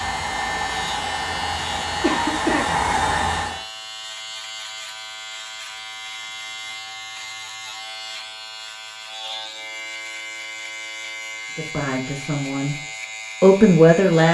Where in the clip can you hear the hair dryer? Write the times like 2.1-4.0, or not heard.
0.0-3.6.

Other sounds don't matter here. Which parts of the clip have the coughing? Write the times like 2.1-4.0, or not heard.
2.0-2.8.